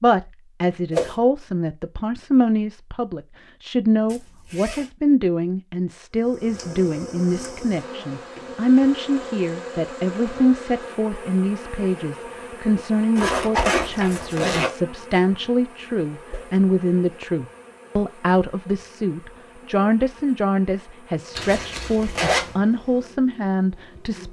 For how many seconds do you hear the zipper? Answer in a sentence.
The zipper can be heard for 4 seconds in total.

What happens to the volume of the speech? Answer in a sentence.
The loudness of the speech stays about the same.